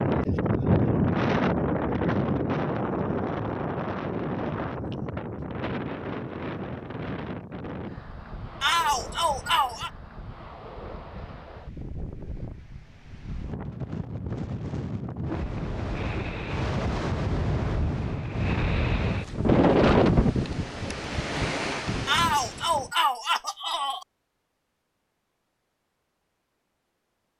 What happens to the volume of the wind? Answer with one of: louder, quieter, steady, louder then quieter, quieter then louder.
quieter then louder.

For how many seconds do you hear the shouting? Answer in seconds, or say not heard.
3 s.